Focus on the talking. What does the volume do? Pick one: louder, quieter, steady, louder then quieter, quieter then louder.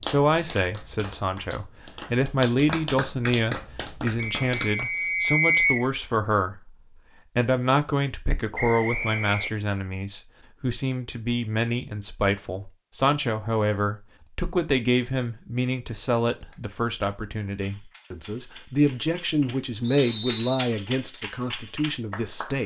steady.